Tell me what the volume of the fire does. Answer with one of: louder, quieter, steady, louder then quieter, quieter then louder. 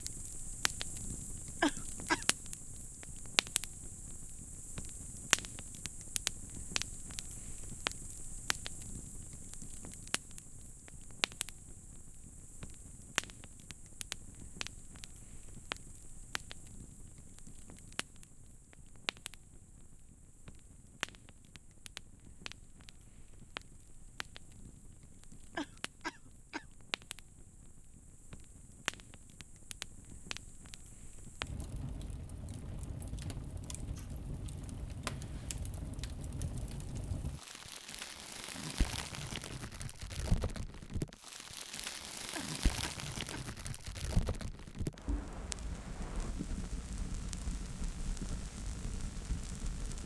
quieter then louder.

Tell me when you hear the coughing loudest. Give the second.
2 s.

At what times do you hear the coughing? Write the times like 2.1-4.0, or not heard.
1.6-2.2, 25.6-26.6, 42.4-43.5.